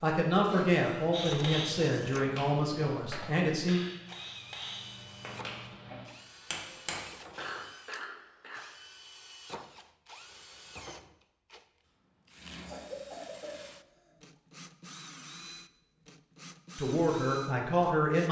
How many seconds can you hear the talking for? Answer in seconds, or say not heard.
5 s.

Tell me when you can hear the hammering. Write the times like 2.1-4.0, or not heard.
1.1-7.1.